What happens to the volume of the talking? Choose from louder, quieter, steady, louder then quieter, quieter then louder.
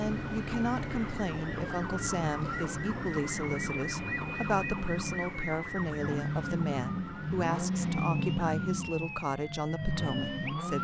steady.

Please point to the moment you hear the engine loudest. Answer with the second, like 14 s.
8 s.